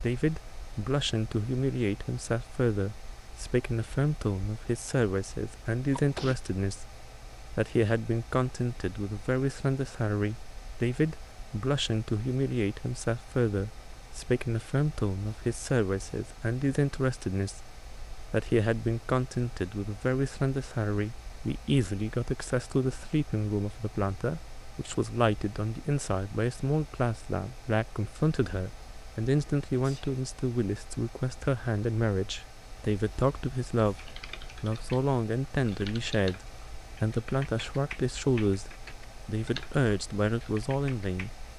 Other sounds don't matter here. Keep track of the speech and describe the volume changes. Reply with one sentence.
The volume of the speech stays about the same.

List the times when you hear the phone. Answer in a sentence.
The phone can't be heard in this clip.